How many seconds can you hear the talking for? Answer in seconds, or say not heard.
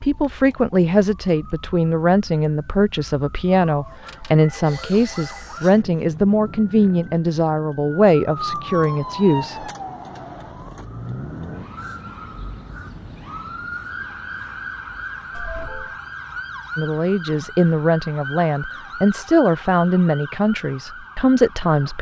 15 s.